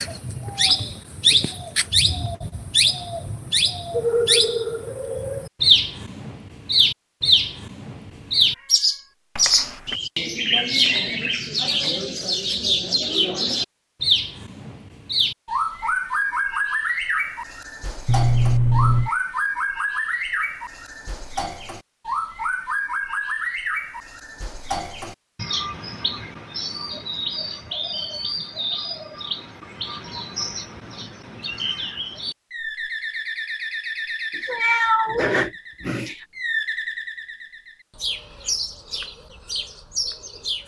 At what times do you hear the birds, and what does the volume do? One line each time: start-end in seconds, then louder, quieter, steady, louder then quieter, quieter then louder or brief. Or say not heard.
0.0-40.6 quieter.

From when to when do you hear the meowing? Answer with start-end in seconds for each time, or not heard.
9.3-9.9, 18.1-19.1, 34.4-36.2.